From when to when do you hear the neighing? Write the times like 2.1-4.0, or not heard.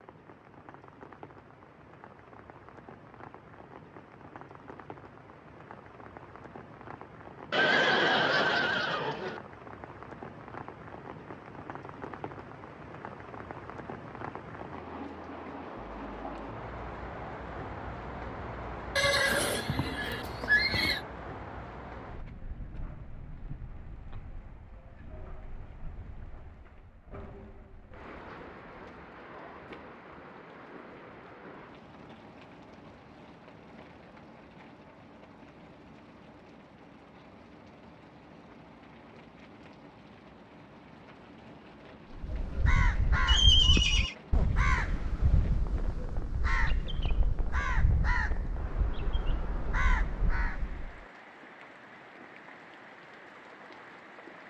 7.5-9.4, 18.9-21.0, 43.2-44.1.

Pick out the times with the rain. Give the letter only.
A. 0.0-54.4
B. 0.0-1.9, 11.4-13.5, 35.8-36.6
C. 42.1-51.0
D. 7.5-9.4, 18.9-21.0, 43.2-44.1
A.